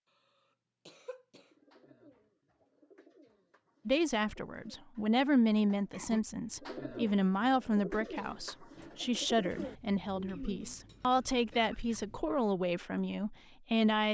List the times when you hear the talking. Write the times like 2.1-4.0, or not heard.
3.9-14.0.